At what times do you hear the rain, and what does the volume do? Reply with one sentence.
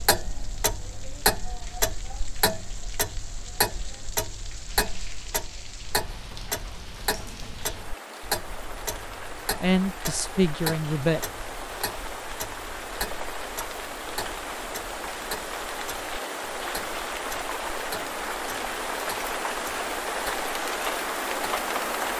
The rain can be heard from 0.0 to 22.1 s, getting louder.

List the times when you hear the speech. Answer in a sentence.
You can hear the speech from 9.6 to 11.2 s.